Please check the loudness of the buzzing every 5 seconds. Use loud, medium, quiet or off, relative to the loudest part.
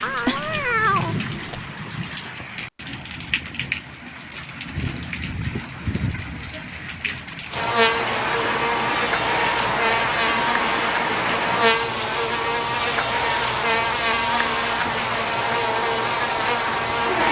off, loud, loud, loud.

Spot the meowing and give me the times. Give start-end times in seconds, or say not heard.
0.0-1.6.